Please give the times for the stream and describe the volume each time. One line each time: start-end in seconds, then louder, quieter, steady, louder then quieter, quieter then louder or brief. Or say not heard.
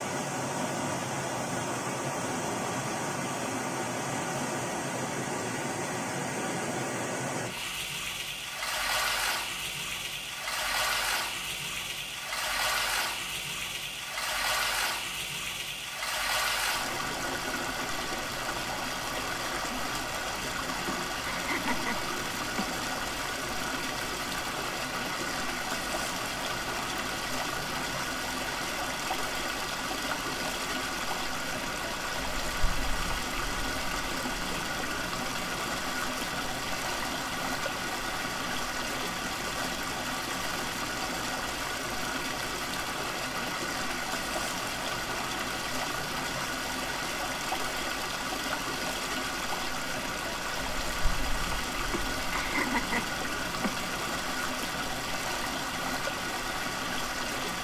0.0-57.6 steady.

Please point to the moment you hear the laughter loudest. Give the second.
53 s.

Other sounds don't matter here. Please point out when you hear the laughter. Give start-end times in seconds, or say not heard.
20.9-22.6, 51.9-53.8.